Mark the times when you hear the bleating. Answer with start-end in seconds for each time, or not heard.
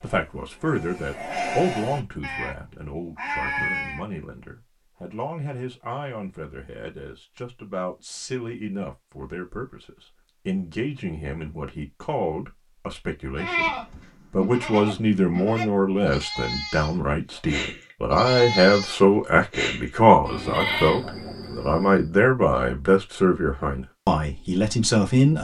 0.0-4.0, 13.3-22.1.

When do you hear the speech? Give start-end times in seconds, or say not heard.
0.0-13.7, 14.3-25.3.